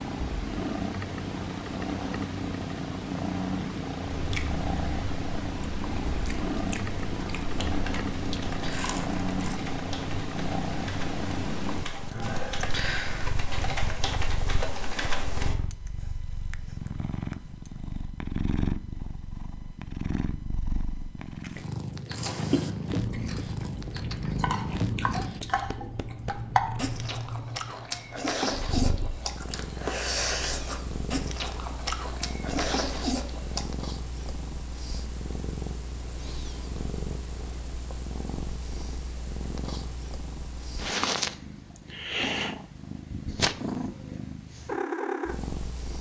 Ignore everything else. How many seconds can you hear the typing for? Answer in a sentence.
You can hear the typing for 8 seconds altogether.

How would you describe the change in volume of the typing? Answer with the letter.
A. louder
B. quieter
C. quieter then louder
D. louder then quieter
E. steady
A.